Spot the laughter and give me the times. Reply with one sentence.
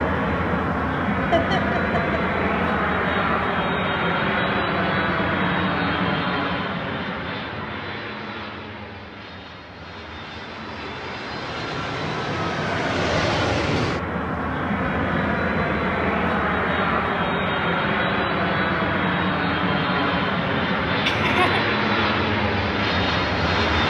The laughter can be heard from 1.3 to 2.2 s and from 21.1 to 21.6 s.